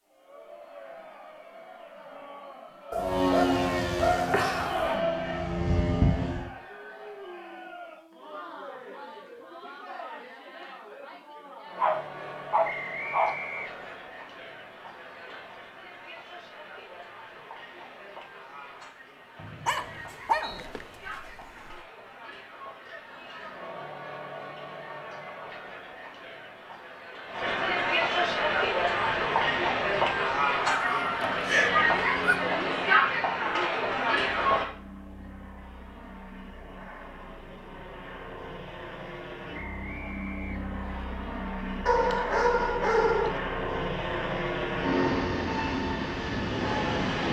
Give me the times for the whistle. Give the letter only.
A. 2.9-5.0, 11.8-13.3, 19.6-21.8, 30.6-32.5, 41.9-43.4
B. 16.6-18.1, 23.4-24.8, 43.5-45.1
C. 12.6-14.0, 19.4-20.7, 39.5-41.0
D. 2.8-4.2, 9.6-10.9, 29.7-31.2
C.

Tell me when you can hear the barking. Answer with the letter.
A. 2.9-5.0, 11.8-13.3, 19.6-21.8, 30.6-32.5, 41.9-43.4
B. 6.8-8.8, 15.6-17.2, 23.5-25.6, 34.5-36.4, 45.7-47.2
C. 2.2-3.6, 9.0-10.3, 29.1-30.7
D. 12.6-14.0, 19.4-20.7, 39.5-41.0
A.